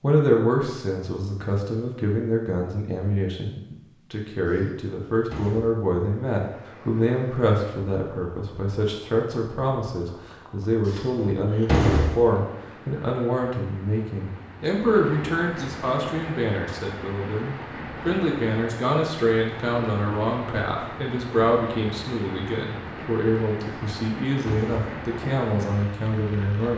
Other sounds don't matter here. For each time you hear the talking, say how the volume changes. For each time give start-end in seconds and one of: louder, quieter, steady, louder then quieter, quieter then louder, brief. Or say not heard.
0.0-26.7 steady.